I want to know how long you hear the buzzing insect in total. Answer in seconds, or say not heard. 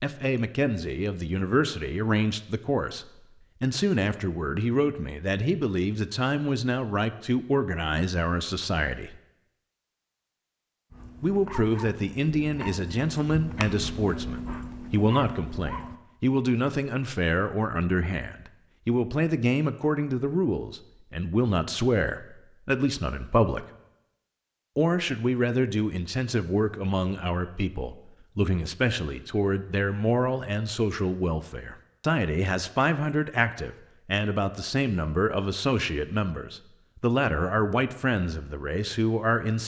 not heard.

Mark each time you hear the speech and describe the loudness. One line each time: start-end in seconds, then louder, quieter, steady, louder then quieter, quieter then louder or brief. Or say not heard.
0.0-9.2 steady
11.2-23.6 steady
24.8-39.6 steady.